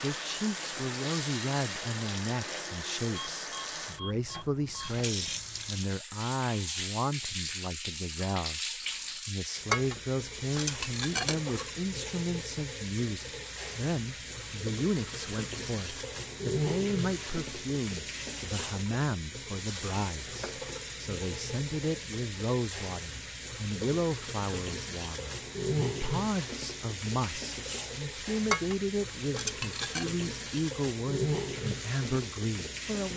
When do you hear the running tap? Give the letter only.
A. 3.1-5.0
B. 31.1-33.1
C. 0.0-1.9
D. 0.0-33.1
D.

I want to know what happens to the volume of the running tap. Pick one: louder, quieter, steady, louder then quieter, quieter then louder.
steady.